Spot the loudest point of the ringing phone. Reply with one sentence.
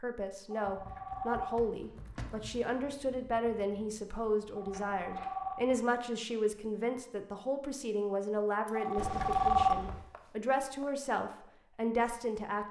The volume of the ringing phone peaks at 10 seconds.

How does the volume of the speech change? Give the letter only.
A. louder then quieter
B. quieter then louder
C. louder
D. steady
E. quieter
D.